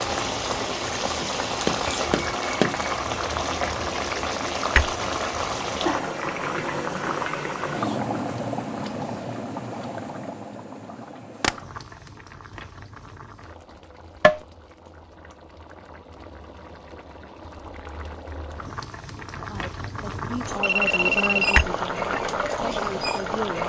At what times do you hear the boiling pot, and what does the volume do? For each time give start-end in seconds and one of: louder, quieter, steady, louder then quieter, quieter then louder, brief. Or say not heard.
0.0-23.6 quieter then louder.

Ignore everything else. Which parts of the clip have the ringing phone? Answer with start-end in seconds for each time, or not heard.
20.6-21.6.